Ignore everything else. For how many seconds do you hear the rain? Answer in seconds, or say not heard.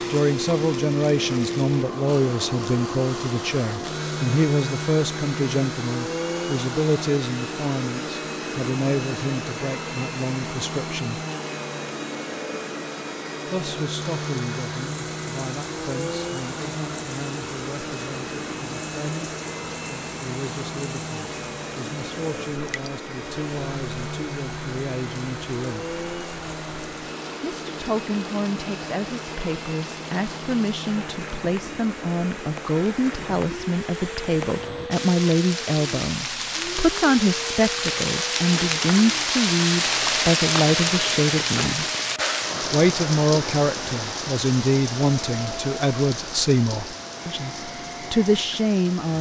35 s.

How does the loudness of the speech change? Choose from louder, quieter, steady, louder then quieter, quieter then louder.
quieter then louder.